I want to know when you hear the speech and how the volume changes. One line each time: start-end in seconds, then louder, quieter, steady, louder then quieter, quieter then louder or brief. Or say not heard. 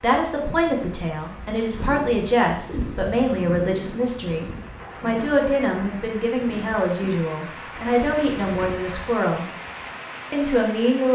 0.0-9.5 steady
10.3-11.1 brief.